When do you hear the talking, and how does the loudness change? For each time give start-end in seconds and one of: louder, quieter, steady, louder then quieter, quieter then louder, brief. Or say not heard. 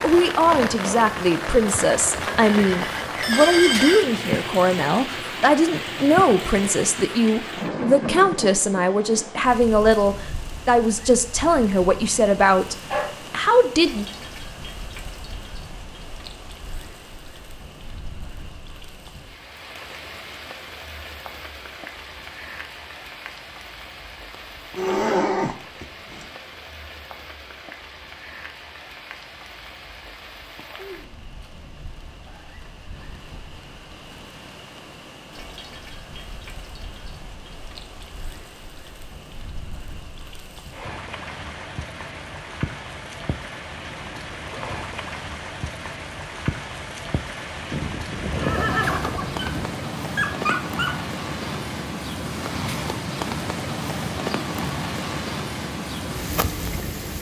0.0-14.1 steady.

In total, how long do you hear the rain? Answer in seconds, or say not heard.
57 s.